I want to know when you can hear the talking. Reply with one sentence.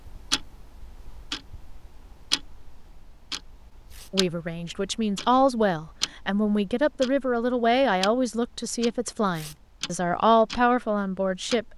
The talking can be heard from 4.1 to 11.7 s.